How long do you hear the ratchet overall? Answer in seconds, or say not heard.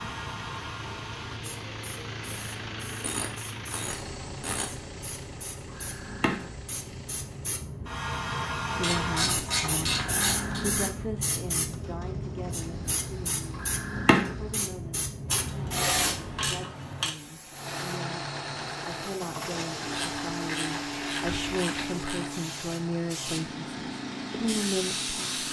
8 s.